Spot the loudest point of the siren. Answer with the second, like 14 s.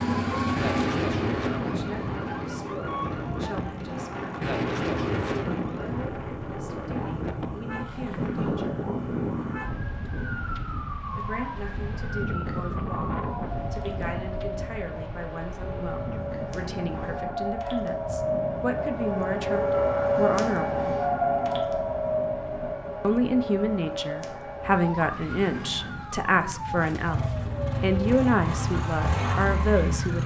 20 s.